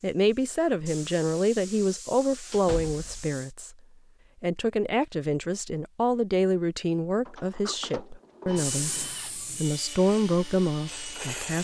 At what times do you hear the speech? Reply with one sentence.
You can hear the speech from 0.0 to 3.8 s and from 4.4 to 11.6 s.